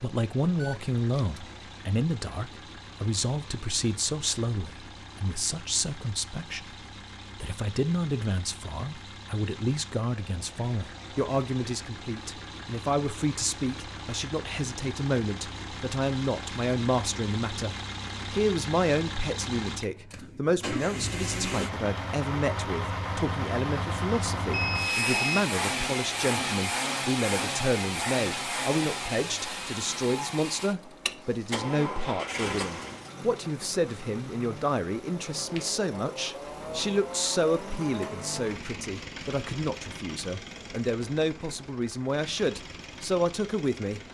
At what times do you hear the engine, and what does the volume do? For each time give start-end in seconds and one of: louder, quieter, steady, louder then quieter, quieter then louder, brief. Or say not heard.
0.0-44.0 louder then quieter.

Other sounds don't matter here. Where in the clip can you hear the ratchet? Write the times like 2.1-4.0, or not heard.
not heard.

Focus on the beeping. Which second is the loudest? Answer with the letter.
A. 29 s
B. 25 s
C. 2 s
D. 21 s
B.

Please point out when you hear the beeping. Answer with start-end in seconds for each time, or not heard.
0.6-1.4, 24.5-25.4.